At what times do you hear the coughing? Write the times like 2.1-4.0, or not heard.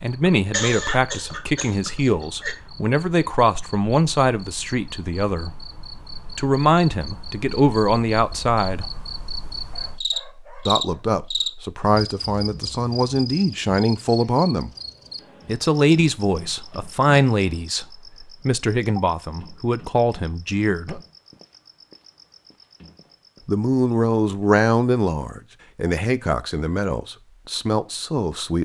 0.3-2.5.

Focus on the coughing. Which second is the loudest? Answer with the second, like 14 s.
1 s.